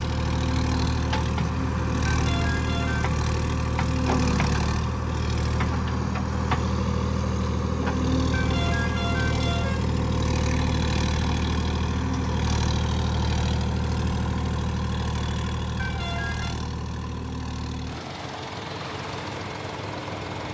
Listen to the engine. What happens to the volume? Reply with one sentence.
The volume of the engine goes down.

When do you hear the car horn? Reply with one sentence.
You can hear the car horn from 2.0 to 3.1 s, from 8.3 to 9.8 s and from 15.8 to 16.6 s.